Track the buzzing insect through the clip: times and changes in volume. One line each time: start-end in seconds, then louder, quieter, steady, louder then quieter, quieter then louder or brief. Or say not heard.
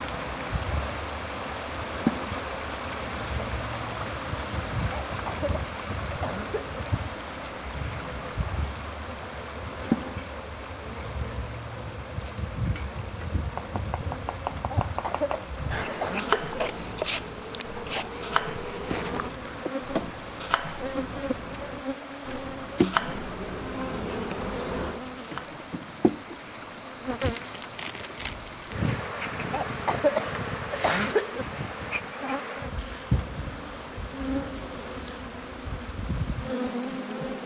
0.0-37.4 steady.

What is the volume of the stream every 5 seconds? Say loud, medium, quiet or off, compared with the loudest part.
loud, loud, medium, medium, medium, medium, medium, medium.